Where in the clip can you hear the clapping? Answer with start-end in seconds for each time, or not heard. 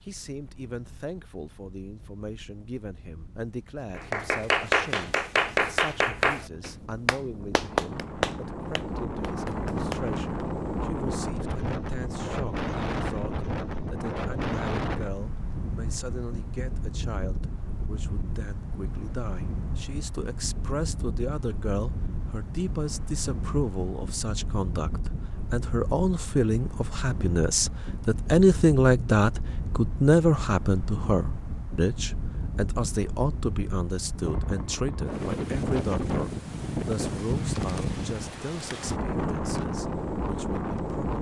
4.0-10.4.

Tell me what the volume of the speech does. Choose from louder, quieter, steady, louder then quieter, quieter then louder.
louder then quieter.